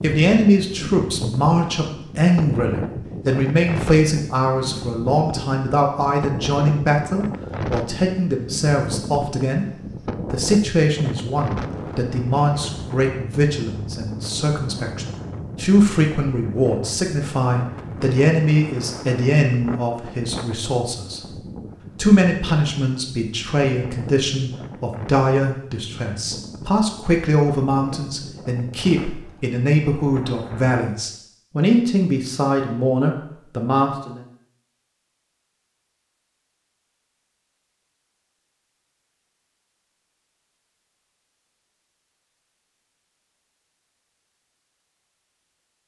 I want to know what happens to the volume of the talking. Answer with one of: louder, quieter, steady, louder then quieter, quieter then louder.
steady.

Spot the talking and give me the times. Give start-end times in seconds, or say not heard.
0.0-9.7, 10.3-34.2.